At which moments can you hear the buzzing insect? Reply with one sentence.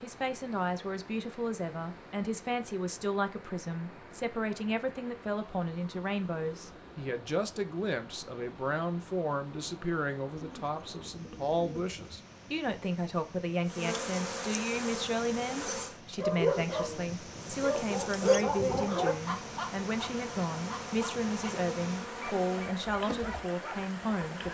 You can hear the buzzing insect from 13.7 to 16.0 s and from 17.3 to 24.4 s.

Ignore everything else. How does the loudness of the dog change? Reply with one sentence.
The loudness of the dog goes up, then down.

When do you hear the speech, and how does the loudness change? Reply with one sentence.
You can hear the speech from 0.0 to 24.4 s, at a steady volume.